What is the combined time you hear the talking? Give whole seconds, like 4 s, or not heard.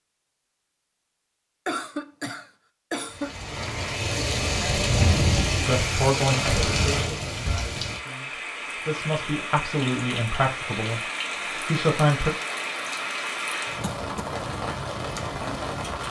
6 s.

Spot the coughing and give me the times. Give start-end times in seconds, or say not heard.
1.6-3.3, 6.2-7.3, 13.8-14.3.